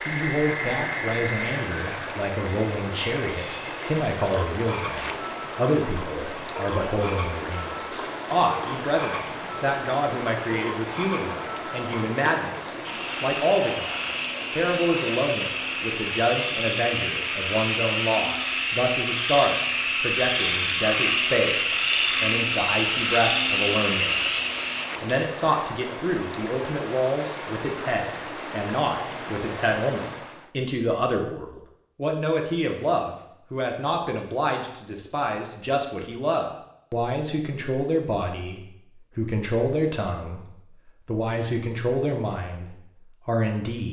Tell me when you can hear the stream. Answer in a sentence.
The stream can be heard from 0.0 to 30.5 s.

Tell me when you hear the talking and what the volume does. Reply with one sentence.
You can hear the talking from 0.1 to 43.8 s, at a steady volume.